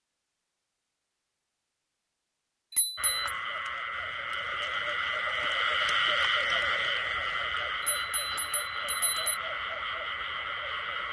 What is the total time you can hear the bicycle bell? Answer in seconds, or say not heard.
2 s.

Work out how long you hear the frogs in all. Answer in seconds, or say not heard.
8 s.